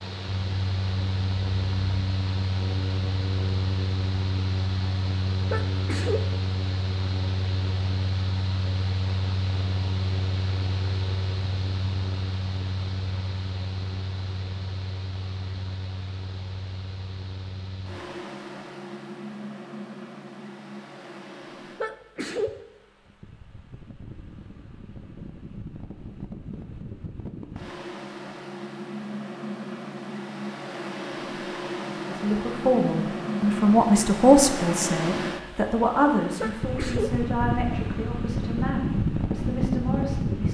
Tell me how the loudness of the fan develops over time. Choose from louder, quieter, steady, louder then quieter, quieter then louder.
quieter then louder.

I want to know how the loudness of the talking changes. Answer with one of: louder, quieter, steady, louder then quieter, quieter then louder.
quieter.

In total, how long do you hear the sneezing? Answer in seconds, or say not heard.
2 s.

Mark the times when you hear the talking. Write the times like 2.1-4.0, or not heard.
31.9-40.4.